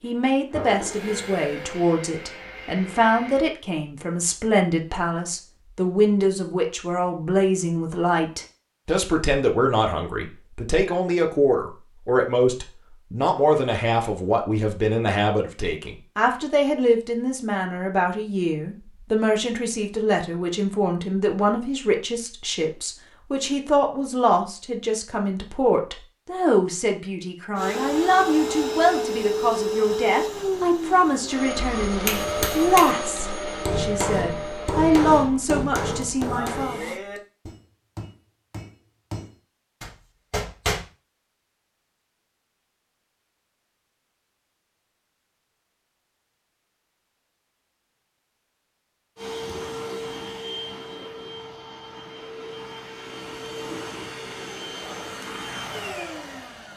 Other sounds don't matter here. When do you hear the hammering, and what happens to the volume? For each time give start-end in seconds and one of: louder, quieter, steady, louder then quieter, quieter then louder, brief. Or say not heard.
32.0-40.9 quieter then louder.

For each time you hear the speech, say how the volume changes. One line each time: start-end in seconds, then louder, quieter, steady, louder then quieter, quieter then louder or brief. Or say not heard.
0.0-36.9 steady.